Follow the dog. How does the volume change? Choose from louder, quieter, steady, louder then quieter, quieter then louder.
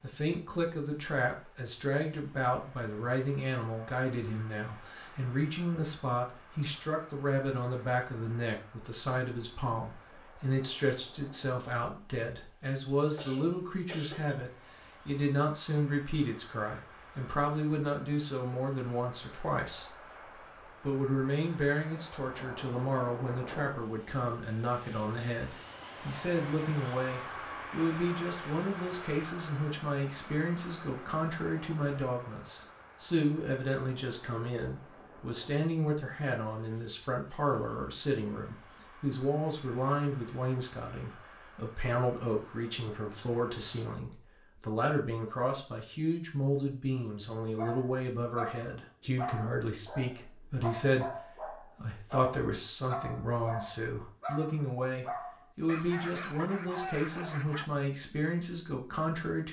steady.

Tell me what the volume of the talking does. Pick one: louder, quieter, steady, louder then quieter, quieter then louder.
steady.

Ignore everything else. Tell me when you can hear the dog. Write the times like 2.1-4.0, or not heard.
47.5-57.7.